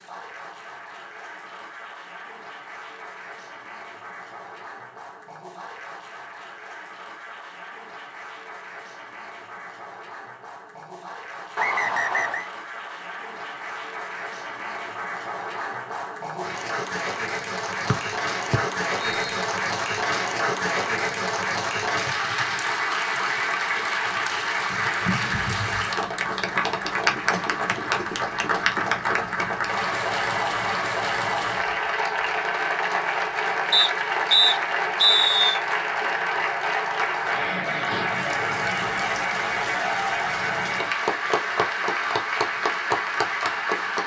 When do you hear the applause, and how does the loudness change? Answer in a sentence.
You can hear the applause from 0.0 to 44.0 s, getting louder.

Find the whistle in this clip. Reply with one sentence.
You can hear the whistle from 11.6 to 12.5 s, from 17.9 to 19.4 s and from 33.7 to 35.6 s.